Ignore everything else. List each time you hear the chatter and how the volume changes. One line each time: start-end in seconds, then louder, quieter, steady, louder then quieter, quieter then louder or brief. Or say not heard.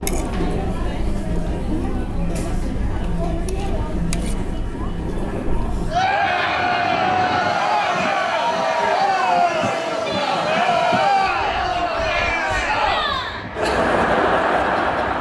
0.0-15.1 louder.